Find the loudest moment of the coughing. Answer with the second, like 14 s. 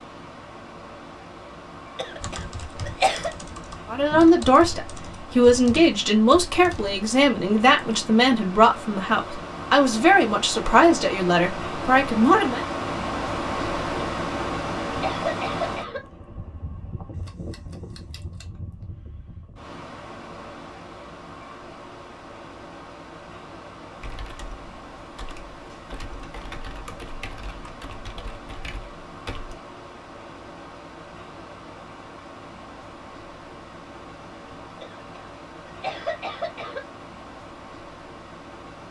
3 s.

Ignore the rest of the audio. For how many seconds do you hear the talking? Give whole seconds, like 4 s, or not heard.
9 s.